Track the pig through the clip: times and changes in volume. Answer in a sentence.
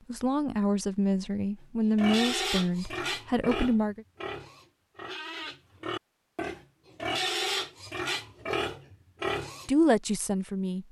The pig can be heard from 1.9 to 9.7 s, getting quieter then louder.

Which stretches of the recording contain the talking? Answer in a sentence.
You can hear the talking from 0.1 to 4.0 s and from 9.7 to 10.8 s.